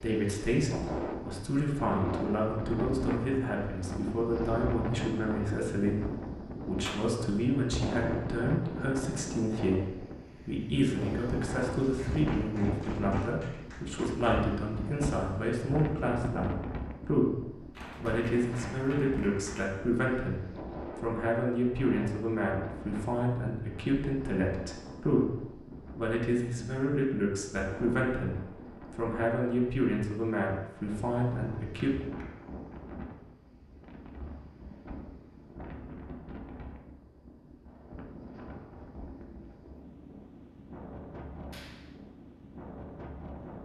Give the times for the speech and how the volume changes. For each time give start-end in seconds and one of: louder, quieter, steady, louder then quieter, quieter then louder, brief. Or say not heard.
0.0-31.9 steady.